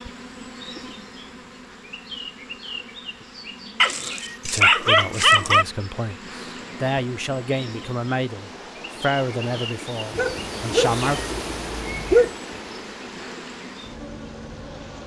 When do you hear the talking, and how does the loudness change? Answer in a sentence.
You can hear the talking from 4.4 to 11.2 s, getting louder then quieter.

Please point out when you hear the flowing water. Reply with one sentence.
You can hear the flowing water from 6.4 to 15.0 s.